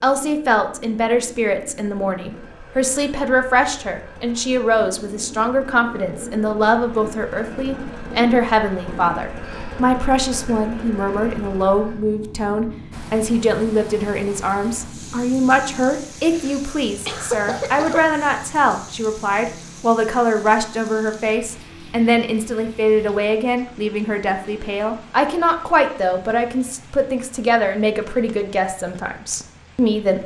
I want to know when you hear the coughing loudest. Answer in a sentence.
The loudest moment of the coughing is at 17 seconds.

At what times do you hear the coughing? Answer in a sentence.
You can hear the coughing from 16.2 to 18.1 s.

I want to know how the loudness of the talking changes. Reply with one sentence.
The volume of the talking stays about the same.